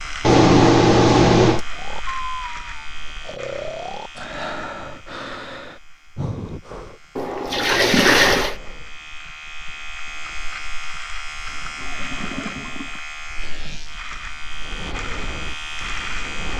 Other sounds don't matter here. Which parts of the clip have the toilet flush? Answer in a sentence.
The toilet flush can be heard from 0.2 to 1.6 s, from 7.2 to 8.6 s and from 11.4 to 13.0 s.